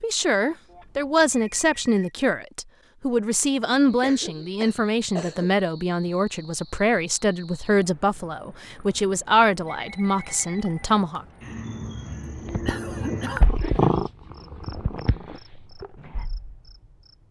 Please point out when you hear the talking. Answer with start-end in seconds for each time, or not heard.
0.0-11.2.